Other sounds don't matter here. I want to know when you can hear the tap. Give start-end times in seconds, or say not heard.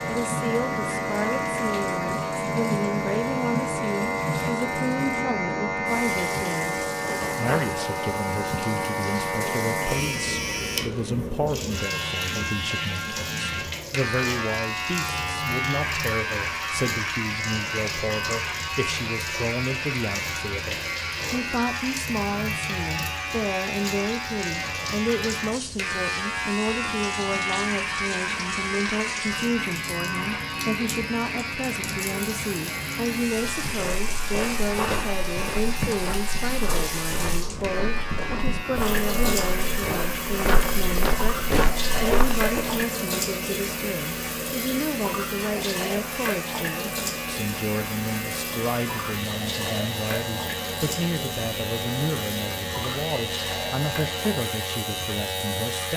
0.0-55.9.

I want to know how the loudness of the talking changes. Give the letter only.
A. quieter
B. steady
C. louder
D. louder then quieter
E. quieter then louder
B.